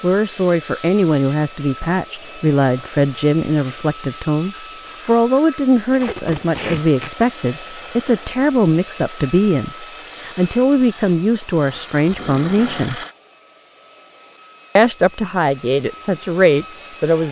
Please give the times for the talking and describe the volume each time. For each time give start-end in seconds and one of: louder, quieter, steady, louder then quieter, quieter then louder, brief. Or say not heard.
0.0-13.0 steady
14.8-17.2 brief.